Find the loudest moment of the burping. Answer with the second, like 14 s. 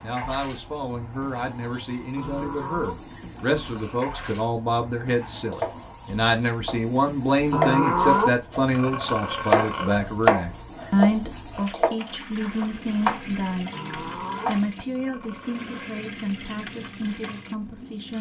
8 s.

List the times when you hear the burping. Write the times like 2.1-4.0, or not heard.
2.1-4.3, 7.5-10.0, 13.7-15.9.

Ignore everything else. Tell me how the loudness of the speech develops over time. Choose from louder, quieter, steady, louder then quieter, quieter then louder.
louder then quieter.